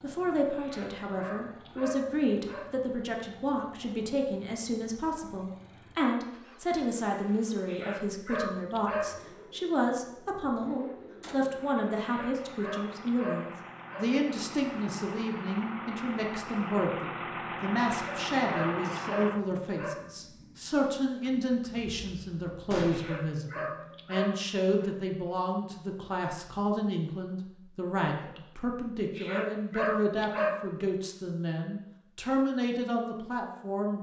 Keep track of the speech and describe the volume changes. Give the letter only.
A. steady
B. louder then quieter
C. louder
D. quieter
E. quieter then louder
A.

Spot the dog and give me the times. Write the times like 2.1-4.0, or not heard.
0.6-2.7, 7.7-9.2, 12.0-14.1, 17.9-20.0, 22.9-24.9, 29.1-30.6.